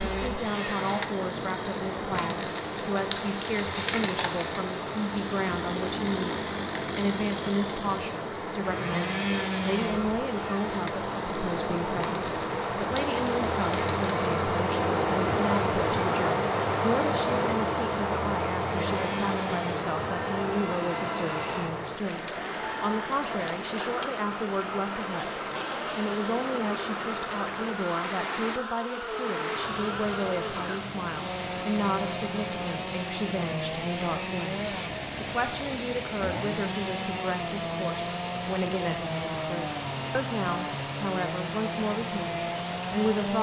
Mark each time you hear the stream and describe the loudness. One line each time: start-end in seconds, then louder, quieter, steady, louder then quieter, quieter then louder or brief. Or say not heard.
0.0-43.3 louder then quieter.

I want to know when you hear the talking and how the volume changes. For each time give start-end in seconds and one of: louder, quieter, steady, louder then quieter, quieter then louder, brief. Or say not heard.
0.1-43.3 steady.